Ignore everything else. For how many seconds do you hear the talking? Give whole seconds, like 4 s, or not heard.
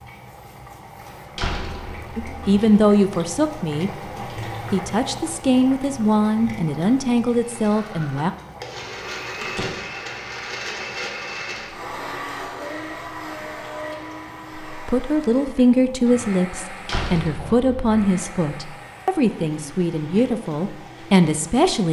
13 s.